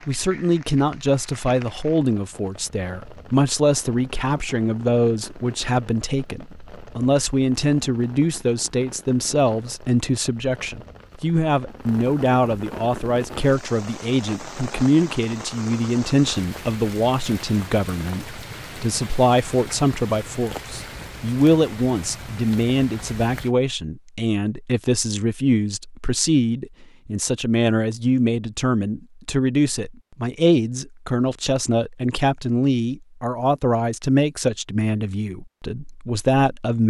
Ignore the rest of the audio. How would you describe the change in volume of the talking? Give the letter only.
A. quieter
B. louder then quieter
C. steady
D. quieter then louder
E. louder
C.